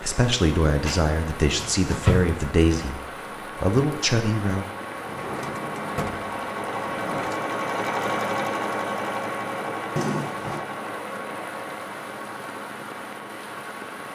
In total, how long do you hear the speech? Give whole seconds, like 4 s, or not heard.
5 s.